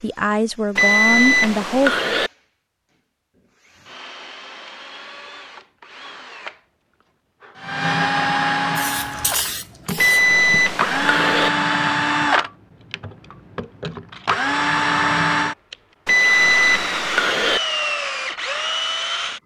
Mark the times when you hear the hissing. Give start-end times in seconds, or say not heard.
8.8-10.3.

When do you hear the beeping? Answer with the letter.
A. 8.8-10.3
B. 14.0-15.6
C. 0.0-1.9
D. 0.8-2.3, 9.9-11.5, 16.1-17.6
D.